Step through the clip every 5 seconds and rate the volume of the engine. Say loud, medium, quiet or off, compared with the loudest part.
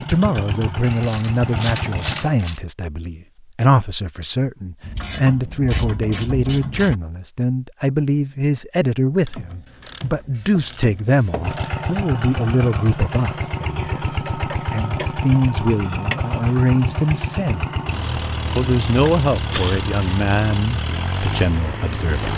loud, off, loud, loud, loud.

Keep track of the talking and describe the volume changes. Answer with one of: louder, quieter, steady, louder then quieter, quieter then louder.
steady.